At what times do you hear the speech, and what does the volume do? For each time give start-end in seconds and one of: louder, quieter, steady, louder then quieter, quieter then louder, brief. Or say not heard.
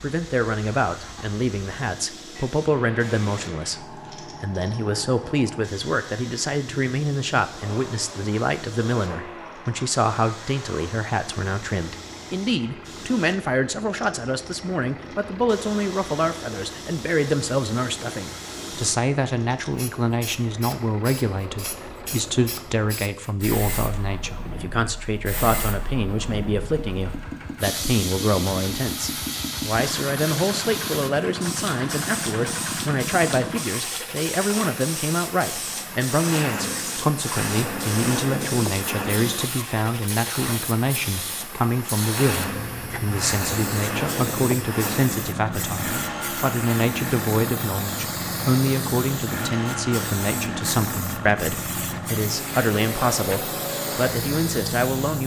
0.0-55.2 steady.